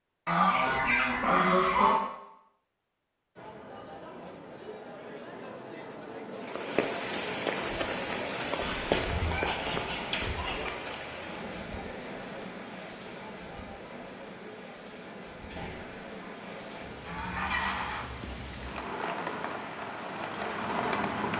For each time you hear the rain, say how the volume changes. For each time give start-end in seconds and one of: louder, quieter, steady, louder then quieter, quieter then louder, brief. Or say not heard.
6.3-21.3 quieter then louder.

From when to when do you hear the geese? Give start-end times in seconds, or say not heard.
0.2-2.0, 8.6-10.6, 15.5-18.1.